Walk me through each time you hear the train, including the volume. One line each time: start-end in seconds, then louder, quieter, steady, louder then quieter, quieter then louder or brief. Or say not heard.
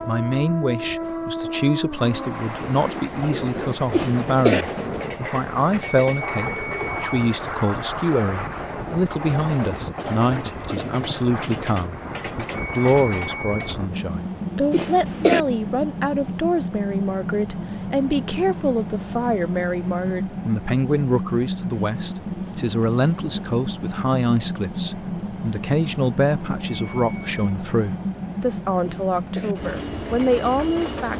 0.0-31.1 steady.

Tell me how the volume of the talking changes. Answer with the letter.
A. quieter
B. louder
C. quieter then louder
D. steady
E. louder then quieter
D.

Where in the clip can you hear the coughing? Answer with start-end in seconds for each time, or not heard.
3.9-4.7, 14.7-15.4, 28.8-29.6.